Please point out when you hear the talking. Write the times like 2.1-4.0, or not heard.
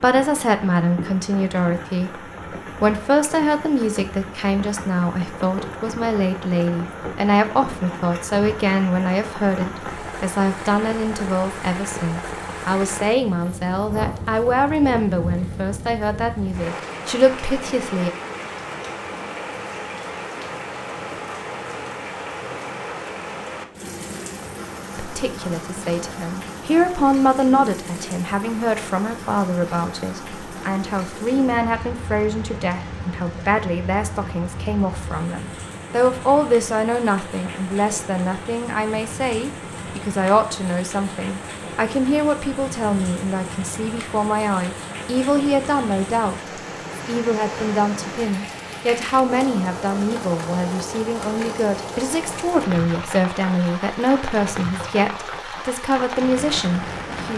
0.0-18.1, 24.9-57.3.